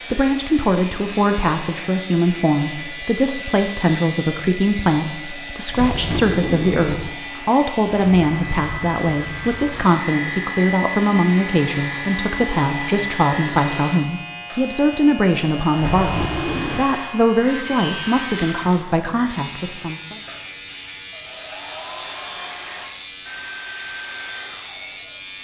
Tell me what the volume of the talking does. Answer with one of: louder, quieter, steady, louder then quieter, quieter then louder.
steady.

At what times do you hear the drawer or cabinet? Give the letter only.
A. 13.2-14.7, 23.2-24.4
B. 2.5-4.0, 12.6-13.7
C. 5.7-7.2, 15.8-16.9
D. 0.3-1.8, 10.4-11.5
C.